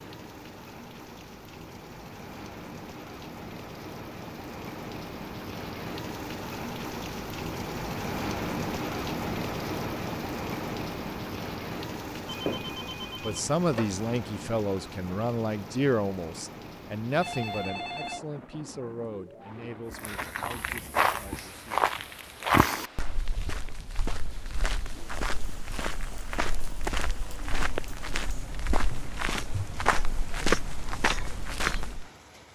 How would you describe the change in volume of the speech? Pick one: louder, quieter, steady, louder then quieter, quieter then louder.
quieter.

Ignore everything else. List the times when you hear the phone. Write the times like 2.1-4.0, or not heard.
12.2-13.9, 17.2-18.2.